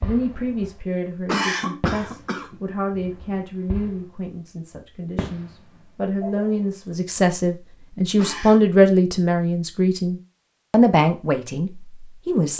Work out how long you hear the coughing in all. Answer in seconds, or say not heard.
2 s.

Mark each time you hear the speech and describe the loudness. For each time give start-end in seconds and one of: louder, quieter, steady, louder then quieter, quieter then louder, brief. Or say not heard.
0.0-12.5 louder.